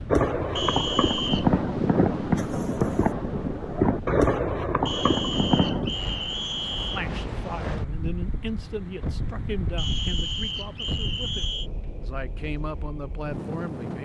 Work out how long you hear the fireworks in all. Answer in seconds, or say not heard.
6 s.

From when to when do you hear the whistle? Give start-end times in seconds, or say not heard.
0.6-1.4, 4.8-7.0, 9.8-11.7.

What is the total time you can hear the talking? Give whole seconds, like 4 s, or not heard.
7 s.